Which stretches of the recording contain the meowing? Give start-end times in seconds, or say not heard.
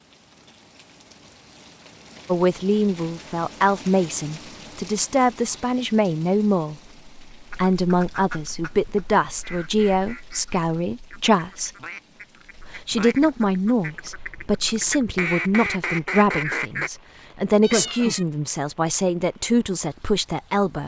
17.6-18.2.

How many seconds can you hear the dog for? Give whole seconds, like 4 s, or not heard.
not heard.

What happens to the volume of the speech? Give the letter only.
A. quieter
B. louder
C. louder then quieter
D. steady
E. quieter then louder
D.